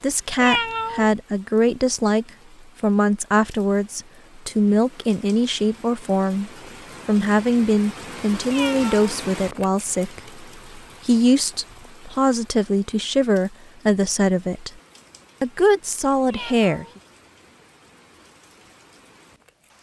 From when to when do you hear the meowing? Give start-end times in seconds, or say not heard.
0.4-1.1, 8.4-9.1, 16.2-16.9.